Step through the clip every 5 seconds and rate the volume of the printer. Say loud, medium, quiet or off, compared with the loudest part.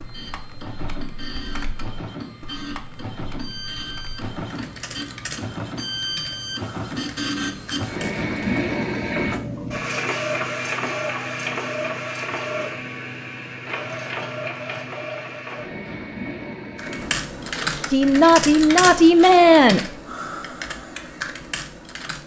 medium, loud, loud, medium, off.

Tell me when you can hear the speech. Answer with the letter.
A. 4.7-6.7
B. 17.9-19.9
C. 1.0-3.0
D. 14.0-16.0
B.